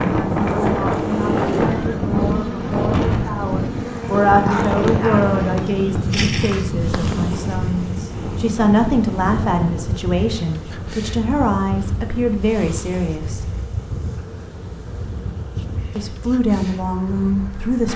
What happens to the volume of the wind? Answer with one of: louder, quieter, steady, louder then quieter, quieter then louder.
quieter.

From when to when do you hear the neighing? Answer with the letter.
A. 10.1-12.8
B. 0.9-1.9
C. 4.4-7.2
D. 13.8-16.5
B.